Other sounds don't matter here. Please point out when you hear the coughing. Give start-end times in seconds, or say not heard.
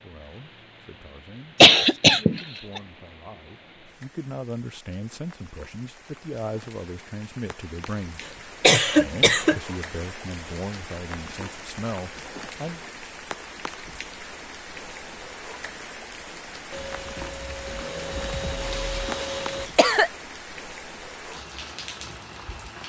1.6-2.8, 8.6-9.6, 18.7-20.1.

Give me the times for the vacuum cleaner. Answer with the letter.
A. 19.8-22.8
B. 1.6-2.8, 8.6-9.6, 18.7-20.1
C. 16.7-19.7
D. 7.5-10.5
C.